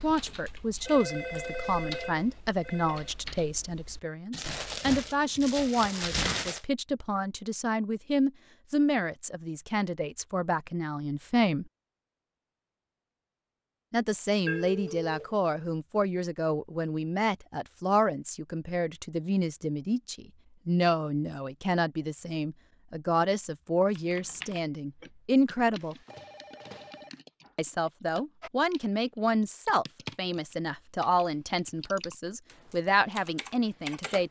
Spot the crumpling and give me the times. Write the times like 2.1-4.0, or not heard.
4.3-6.6.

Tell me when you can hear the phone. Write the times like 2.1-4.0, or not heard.
0.8-3.1, 14.4-15.3, 25.8-27.2.